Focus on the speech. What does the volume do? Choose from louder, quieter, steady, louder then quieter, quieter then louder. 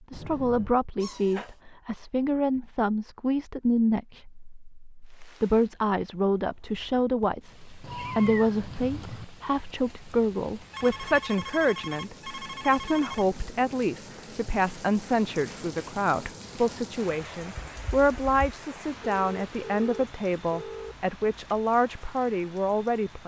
steady.